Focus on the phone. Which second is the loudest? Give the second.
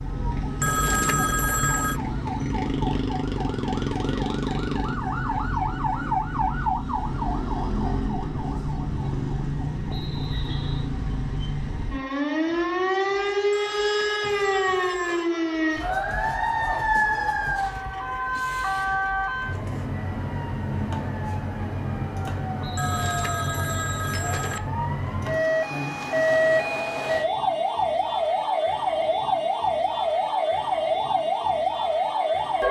1 s.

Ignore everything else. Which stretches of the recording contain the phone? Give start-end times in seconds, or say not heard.
0.6-2.0, 13.5-15.3, 22.8-24.6.